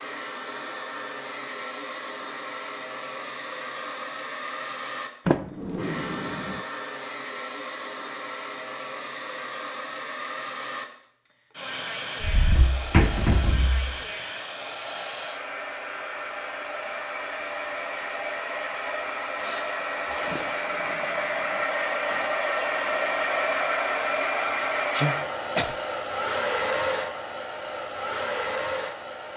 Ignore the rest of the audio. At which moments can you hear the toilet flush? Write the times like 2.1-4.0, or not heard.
not heard.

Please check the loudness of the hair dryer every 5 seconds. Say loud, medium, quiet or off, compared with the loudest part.
medium, medium, medium, medium, loud, loud.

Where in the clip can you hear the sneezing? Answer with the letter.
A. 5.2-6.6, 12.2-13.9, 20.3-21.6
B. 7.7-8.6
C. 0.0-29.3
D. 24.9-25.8
D.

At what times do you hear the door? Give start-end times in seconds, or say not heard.
5.2-6.6, 12.2-13.9, 20.3-21.6.